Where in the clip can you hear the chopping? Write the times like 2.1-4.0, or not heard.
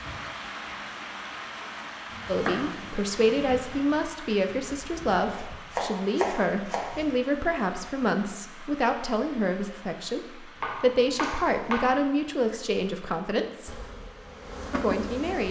2.1-3.6, 5.3-7.0, 10.6-11.9.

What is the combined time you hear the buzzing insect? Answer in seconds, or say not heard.
2 s.